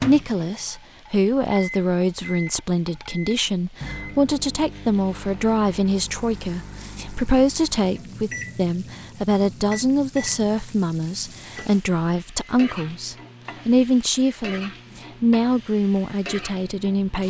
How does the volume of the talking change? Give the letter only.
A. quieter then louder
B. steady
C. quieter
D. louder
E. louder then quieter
B.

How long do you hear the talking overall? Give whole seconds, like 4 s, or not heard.
17 s.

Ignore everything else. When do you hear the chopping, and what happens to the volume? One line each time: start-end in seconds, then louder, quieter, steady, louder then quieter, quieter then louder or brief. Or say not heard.
not heard.